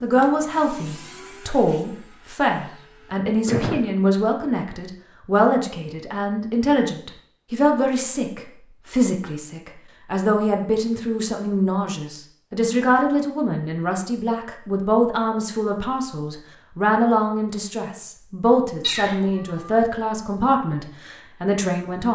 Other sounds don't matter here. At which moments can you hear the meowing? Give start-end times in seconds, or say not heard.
18.8-19.8.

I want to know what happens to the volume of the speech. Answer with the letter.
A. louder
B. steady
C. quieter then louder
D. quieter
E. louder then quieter
B.